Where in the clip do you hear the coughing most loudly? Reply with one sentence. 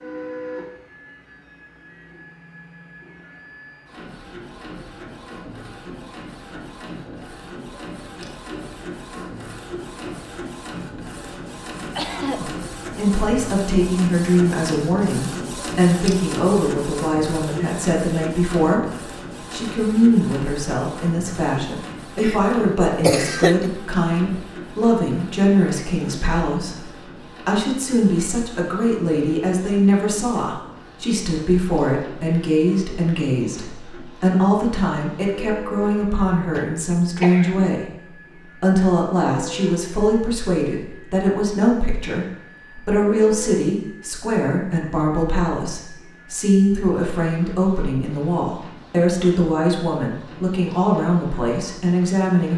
The volume of the coughing peaks at 23 seconds.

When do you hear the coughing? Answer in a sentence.
You can hear the coughing from 11.9 to 12.5 s, from 22.1 to 23.6 s and from 35.8 to 37.7 s.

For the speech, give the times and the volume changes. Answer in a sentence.
You can hear the speech from 12.3 to 52.5 s, at a steady volume.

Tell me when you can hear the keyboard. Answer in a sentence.
The keyboard can't be heard in this clip.